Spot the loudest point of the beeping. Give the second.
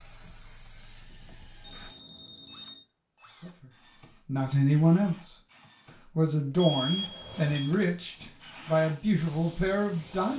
7 s.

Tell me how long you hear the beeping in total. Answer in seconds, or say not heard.
2 s.